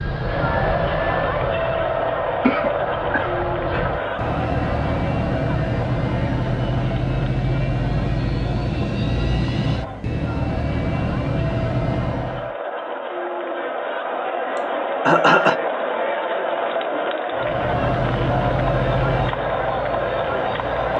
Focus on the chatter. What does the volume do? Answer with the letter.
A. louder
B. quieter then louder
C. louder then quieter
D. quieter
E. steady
B.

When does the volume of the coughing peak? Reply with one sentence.
The volume of the coughing peaks at 15 seconds.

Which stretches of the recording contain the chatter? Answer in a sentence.
The chatter can be heard from 0.0 to 20.9 s.